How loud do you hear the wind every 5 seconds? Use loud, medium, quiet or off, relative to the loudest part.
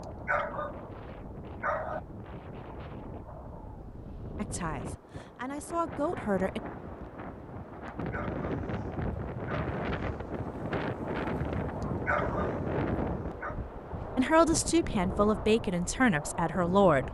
medium, loud, loud, medium.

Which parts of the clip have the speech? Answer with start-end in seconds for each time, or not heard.
4.3-6.6, 14.2-17.0.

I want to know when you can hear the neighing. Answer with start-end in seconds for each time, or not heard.
not heard.